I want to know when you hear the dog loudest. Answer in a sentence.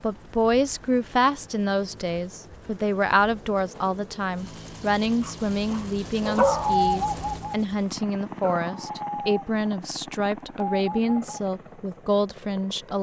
The volume of the dog peaks at 7 seconds.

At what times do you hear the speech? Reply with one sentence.
The speech can be heard from 0.0 to 12.9 s.